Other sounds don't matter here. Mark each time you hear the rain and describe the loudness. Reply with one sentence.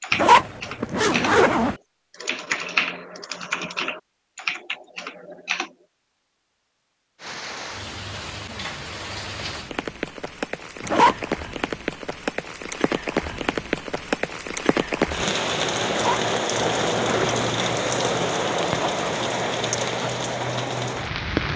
The rain can be heard from 7.2 to 21.5 s, getting louder.